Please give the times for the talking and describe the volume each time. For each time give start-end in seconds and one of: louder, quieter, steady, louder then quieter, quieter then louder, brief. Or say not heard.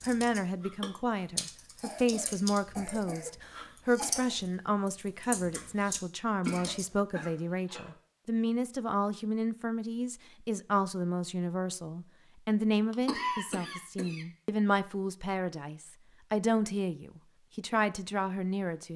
0.1-18.9 steady.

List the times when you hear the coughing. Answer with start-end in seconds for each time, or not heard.
1.8-4.3, 6.5-8.0, 12.9-14.2.